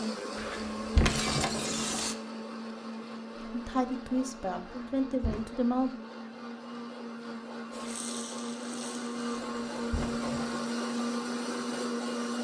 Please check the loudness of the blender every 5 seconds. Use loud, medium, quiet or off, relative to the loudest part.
medium, medium, loud.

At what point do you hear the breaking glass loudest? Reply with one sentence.
The loudest moment of the breaking glass is at 1 second.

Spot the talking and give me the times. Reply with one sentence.
You can hear the talking from 3.5 to 5.9 s.